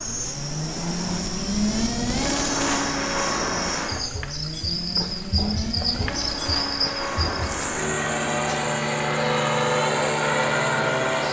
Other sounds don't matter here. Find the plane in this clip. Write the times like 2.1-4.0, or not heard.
0.0-11.2.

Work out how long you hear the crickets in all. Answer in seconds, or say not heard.
11 s.